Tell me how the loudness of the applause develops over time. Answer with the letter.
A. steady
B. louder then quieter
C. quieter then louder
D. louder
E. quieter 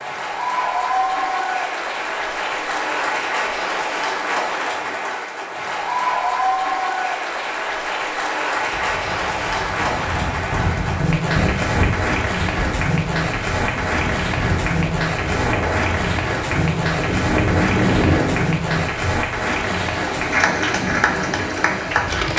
A.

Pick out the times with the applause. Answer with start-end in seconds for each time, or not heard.
0.0-22.3.